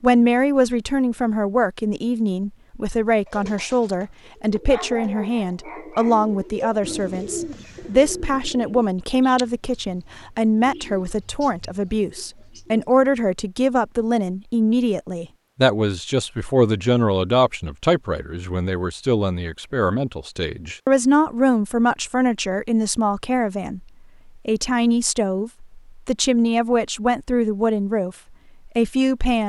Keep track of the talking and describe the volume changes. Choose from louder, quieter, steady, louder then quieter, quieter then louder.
steady.